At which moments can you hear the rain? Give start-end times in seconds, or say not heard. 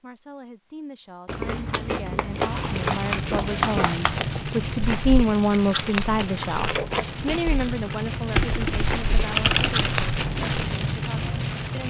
2.3-11.8.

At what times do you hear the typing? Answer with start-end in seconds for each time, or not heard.
1.2-4.2, 8.3-10.0.